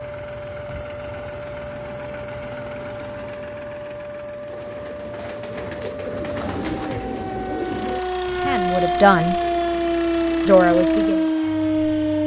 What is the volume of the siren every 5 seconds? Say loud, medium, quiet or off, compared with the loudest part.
quiet, medium, loud.